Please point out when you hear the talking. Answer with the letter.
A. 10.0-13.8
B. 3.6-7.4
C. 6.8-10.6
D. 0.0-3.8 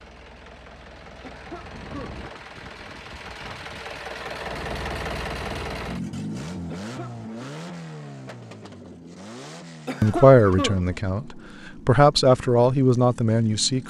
A.